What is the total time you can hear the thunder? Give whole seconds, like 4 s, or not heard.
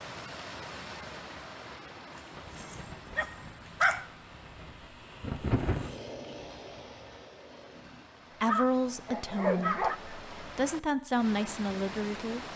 4 s.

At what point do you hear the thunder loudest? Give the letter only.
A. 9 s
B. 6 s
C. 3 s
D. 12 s
B.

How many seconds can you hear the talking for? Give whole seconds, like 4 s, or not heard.
4 s.